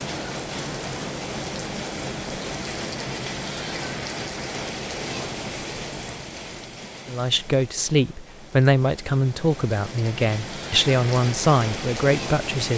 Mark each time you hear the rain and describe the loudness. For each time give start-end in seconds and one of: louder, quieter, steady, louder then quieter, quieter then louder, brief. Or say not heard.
0.0-12.7 quieter then louder.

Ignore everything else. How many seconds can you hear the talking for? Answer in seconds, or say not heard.
6 s.